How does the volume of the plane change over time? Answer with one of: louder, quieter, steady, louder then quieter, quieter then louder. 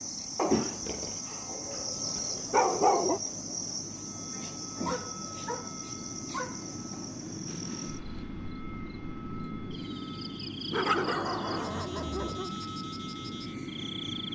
louder.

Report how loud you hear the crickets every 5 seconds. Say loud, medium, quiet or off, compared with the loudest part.
loud, medium, medium.